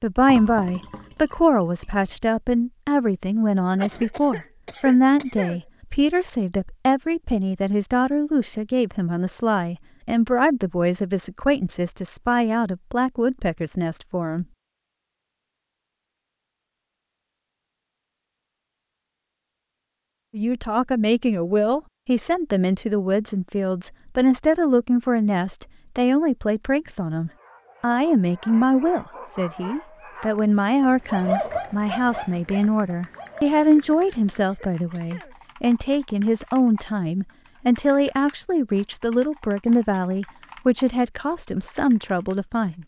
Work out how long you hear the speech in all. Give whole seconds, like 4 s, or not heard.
37 s.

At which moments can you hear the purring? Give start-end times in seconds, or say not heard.
not heard.